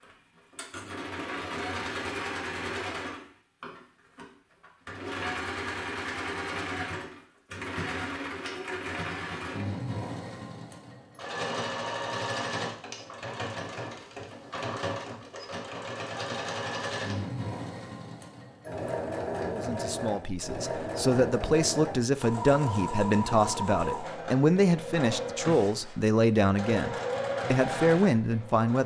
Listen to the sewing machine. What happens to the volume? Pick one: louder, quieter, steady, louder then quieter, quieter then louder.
steady.